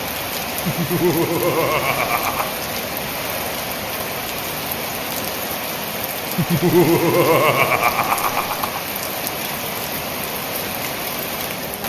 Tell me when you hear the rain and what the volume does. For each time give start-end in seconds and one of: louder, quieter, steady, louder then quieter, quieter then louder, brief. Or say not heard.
0.0-11.8 steady.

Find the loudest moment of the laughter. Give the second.
7 s.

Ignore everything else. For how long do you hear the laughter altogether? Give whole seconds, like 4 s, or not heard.
4 s.